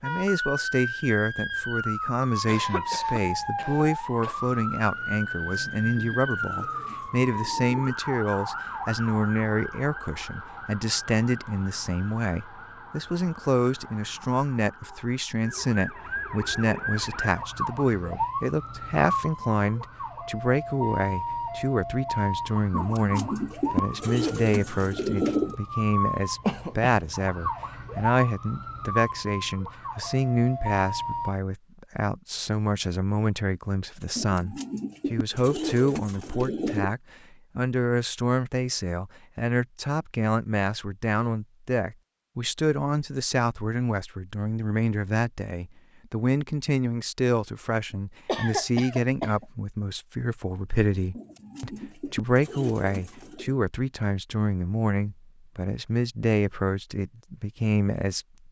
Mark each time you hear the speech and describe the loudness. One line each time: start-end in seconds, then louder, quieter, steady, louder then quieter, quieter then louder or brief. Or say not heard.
0.0-58.4 steady.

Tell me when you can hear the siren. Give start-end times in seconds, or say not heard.
0.0-31.4.